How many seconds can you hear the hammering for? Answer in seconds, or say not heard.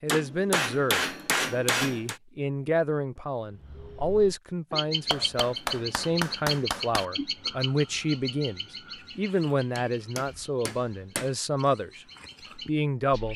6 s.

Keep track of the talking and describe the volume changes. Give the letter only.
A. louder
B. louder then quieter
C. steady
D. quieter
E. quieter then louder
C.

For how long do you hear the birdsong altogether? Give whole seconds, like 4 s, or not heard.
10 s.